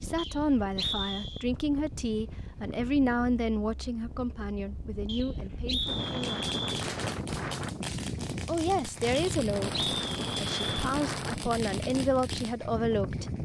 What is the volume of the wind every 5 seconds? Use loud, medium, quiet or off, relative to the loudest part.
medium, loud, loud.